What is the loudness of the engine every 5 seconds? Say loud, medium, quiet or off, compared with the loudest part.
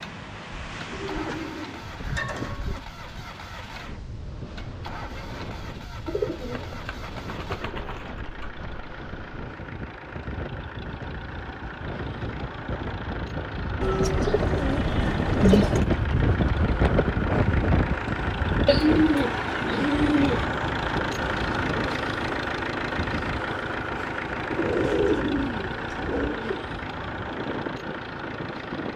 quiet, quiet, medium, loud, loud, medium.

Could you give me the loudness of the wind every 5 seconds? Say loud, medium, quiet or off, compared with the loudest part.
quiet, quiet, medium, loud, medium, medium.